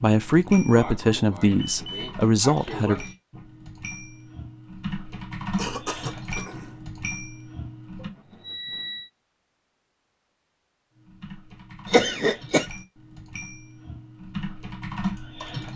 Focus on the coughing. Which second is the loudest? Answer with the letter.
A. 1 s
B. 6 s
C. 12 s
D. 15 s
C.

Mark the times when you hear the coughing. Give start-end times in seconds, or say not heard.
0.5-3.1, 5.3-6.8, 11.9-12.7.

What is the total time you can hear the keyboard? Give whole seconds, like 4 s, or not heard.
13 s.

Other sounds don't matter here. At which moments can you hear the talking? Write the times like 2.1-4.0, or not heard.
0.0-3.0.